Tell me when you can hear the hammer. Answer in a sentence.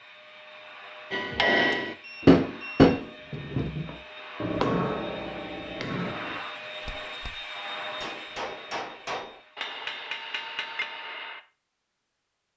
The hammer can be heard from 1.1 to 11.4 s.